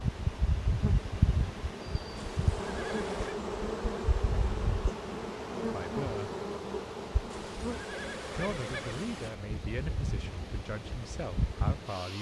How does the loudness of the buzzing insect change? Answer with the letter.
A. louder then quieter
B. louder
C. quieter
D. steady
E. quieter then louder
C.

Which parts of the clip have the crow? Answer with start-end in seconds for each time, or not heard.
not heard.